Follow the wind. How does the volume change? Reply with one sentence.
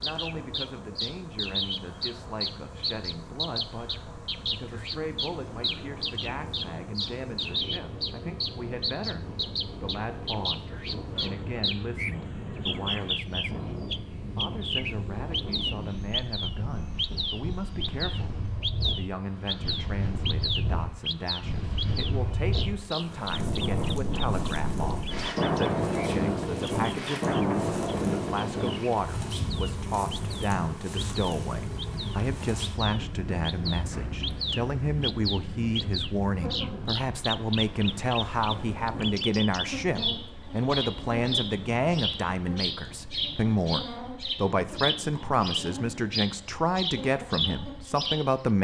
The loudness of the wind goes up, then down.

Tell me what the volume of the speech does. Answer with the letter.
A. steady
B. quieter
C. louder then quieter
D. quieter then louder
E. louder
E.